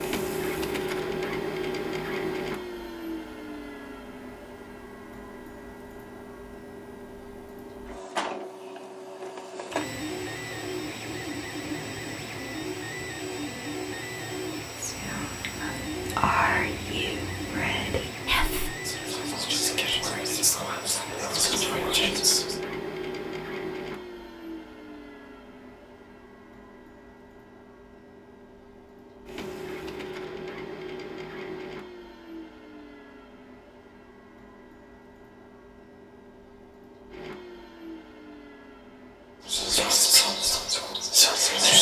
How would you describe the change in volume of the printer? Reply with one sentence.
The loudness of the printer goes down.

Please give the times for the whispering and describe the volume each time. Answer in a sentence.
You can hear the whispering from 14.8 to 22.6 s, at a steady volume; and briefly from 39.5 to 41.7 s.